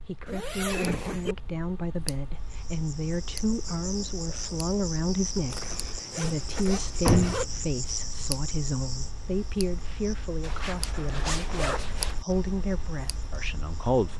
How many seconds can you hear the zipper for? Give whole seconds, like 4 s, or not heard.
5 s.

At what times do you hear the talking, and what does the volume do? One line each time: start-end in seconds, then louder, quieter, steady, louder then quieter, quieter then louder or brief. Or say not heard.
0.1-14.1 steady.